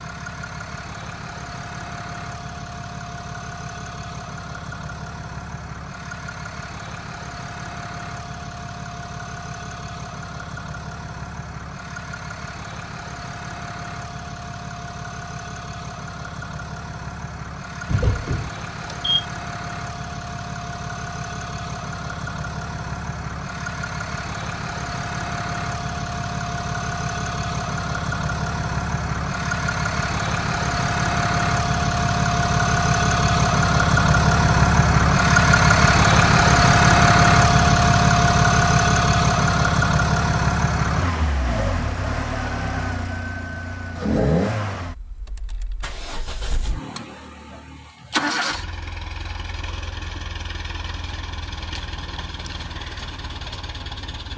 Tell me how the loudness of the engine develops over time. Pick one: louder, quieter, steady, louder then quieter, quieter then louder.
louder then quieter.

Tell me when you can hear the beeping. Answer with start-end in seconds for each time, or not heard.
17.9-19.2.